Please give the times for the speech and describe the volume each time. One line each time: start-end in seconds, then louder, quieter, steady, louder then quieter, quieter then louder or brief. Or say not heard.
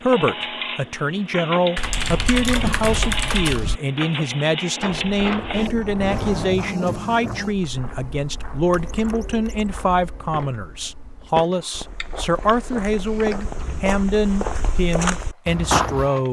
0.0-16.2 steady.